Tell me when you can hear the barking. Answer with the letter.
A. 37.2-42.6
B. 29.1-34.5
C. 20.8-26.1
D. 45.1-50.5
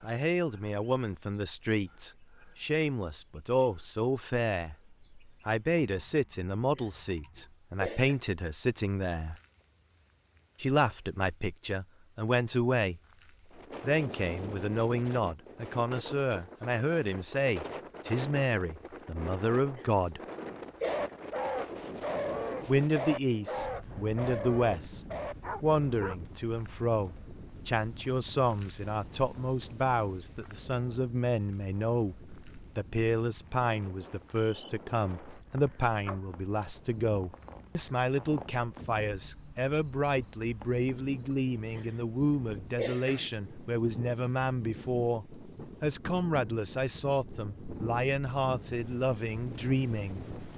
C.